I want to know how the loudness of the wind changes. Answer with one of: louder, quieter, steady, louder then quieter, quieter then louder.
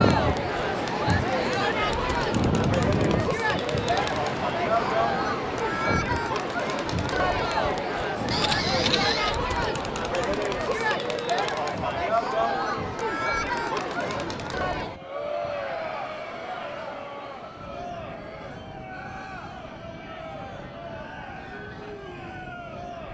quieter.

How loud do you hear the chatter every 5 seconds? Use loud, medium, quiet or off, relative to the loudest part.
loud, loud, loud, medium, quiet.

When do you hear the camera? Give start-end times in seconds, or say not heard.
8.3-9.4.